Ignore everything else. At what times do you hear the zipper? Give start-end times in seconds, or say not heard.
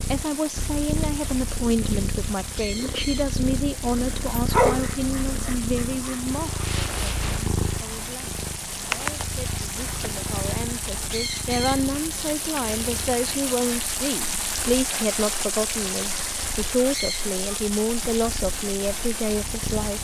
not heard.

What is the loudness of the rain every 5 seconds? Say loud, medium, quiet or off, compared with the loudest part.
medium, medium, loud, loud.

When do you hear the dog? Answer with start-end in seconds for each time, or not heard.
4.3-6.2.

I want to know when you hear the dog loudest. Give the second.
5 s.